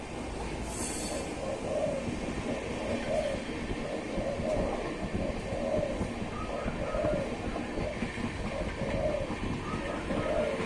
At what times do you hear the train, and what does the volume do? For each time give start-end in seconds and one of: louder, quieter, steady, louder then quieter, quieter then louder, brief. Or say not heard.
0.0-10.6 steady.